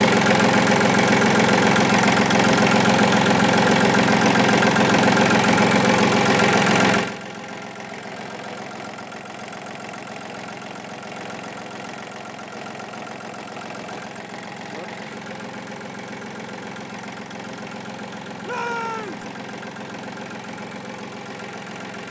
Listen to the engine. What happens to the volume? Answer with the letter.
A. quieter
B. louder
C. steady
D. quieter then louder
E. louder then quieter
A.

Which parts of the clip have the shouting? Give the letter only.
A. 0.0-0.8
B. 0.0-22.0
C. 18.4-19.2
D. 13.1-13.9
C.